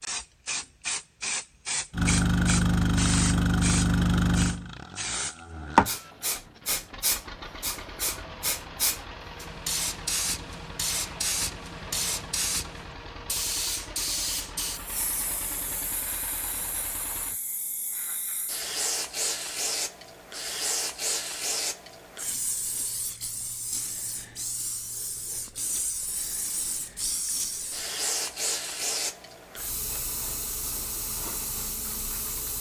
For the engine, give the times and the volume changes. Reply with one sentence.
You can hear the engine from 1.9 to 17.4 s, getting quieter.